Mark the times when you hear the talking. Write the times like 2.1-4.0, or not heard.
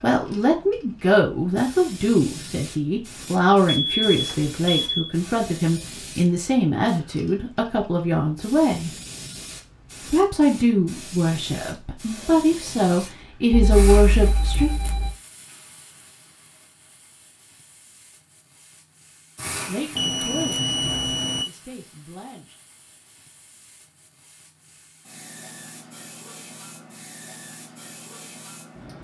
0.0-8.9, 10.1-14.7, 19.6-22.6.